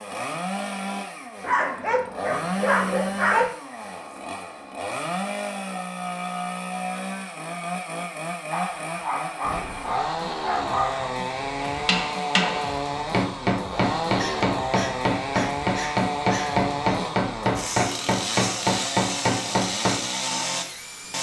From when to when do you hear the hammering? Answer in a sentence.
The hammering can be heard from 11.6 to 20.0 s.